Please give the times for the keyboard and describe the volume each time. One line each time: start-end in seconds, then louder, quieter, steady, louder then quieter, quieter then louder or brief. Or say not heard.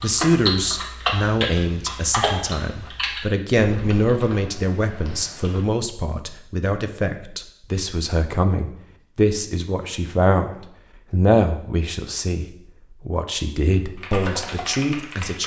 0.0-5.7 quieter
13.8-15.4 brief.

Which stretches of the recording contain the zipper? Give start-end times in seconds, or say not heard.
not heard.